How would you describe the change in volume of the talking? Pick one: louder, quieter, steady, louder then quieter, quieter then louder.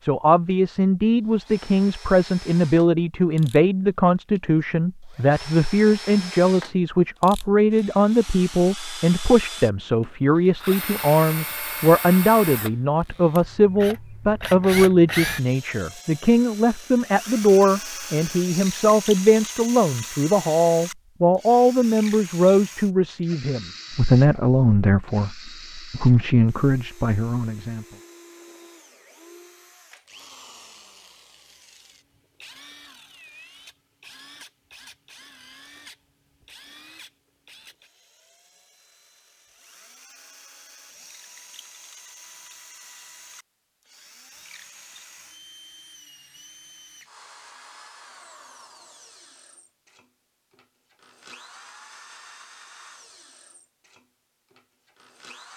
steady.